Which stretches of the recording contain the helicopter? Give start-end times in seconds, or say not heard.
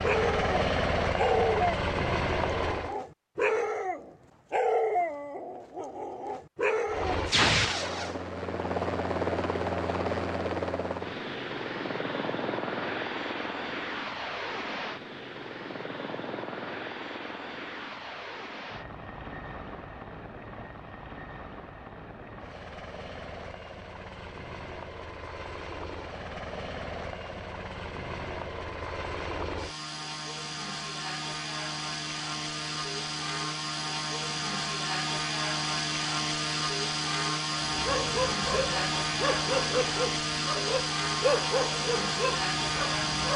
0.0-3.0, 6.8-43.3.